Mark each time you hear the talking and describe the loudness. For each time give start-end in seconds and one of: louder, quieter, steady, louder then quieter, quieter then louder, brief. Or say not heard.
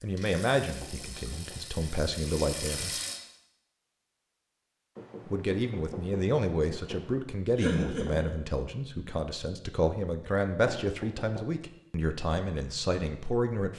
0.0-2.9 brief
5.2-13.7 steady.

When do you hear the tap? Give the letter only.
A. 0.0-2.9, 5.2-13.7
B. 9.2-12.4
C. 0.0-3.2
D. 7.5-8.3
C.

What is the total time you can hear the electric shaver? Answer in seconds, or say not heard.
not heard.